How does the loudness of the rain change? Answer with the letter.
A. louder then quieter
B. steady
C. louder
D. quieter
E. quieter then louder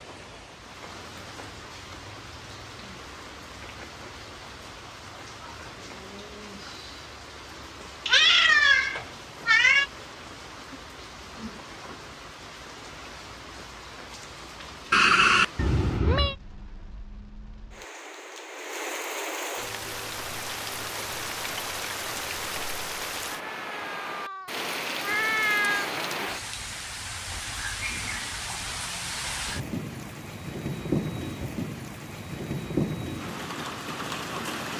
C.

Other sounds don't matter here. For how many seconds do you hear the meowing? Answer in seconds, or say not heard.
6 s.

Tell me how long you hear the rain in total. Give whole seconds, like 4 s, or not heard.
35 s.